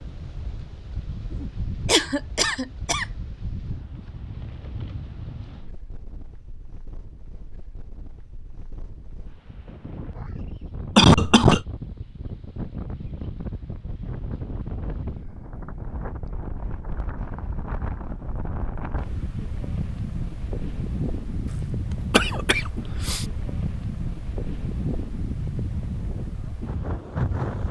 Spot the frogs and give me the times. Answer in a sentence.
You can't hear the frogs here.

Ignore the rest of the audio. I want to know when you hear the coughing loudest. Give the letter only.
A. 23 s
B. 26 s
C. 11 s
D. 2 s
C.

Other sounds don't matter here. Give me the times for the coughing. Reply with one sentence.
You can hear the coughing from 1.4 to 3.0 s, from 10.9 to 11.6 s and from 22.1 to 23.2 s.